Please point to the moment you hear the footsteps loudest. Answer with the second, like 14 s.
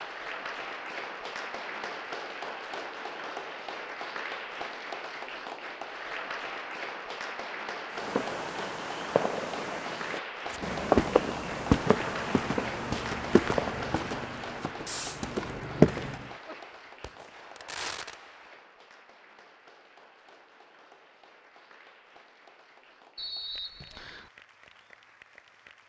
16 s.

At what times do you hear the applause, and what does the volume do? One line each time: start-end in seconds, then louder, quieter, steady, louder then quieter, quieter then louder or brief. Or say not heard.
0.0-25.8 quieter.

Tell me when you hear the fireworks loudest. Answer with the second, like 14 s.
11 s.